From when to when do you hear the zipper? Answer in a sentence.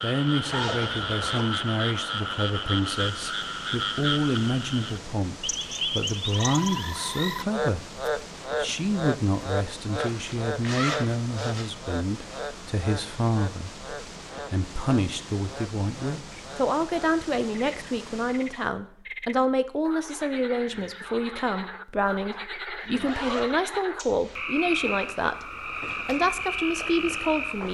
You can hear the zipper from 0.5 to 1.4 s, from 9.9 to 11.7 s and from 22.7 to 24.4 s.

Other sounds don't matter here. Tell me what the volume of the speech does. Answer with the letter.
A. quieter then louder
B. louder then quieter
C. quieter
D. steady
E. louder
D.